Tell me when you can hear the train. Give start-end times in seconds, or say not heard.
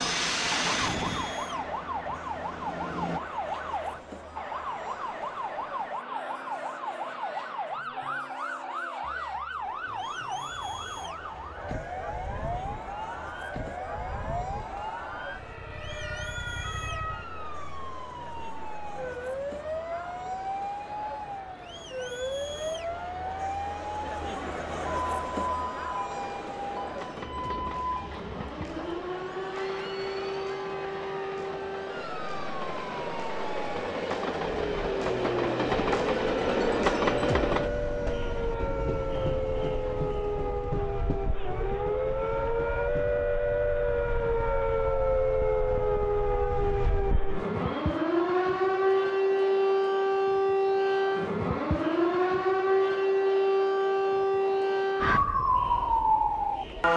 0.0-3.2, 26.1-43.2.